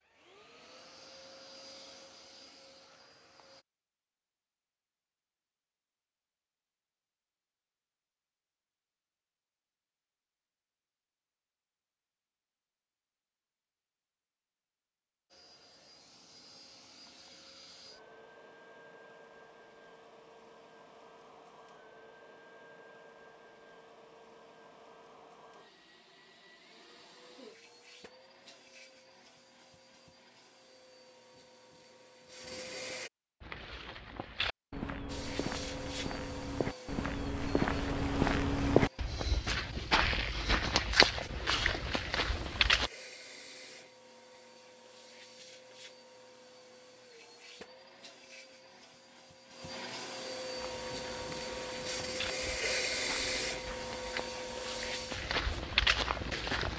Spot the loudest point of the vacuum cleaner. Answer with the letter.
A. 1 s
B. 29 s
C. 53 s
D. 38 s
C.